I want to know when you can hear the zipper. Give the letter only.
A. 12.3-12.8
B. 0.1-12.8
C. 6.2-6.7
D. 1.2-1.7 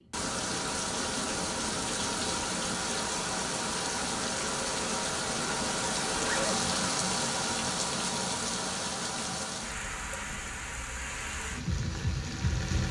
C.